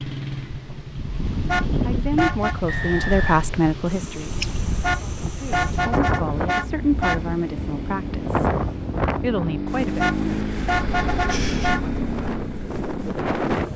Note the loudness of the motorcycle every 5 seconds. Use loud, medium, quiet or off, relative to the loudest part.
medium, medium, loud.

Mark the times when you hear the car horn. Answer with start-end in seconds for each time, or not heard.
1.4-2.6, 4.8-7.2, 9.9-11.8.